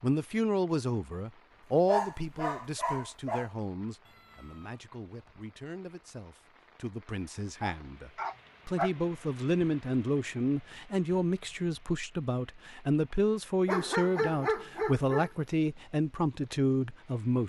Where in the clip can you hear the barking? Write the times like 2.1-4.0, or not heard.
1.9-3.5, 7.6-8.9, 13.7-15.3.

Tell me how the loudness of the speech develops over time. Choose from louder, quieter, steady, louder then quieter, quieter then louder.
quieter then louder.